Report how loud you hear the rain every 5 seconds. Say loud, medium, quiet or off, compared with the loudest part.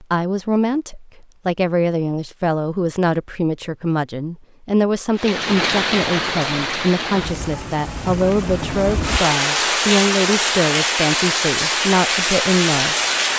off, loud, loud.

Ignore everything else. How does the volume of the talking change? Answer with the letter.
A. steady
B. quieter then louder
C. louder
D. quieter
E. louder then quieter
A.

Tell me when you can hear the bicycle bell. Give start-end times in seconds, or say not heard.
not heard.